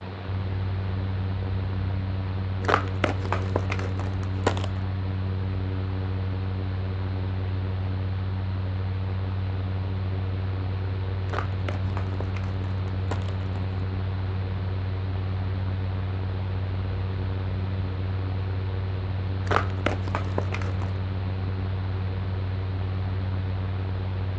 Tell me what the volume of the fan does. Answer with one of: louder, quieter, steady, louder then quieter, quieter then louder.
steady.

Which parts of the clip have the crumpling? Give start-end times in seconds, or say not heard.
2.6-4.8, 11.2-13.8, 19.4-20.9.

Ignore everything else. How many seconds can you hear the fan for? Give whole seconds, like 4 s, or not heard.
24 s.